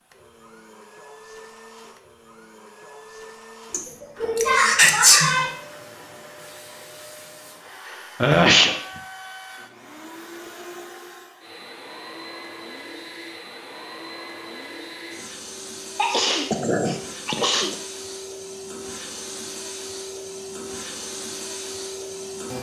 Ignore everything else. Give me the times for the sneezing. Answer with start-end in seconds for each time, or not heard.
3.7-5.5, 8.2-8.8, 15.9-17.8.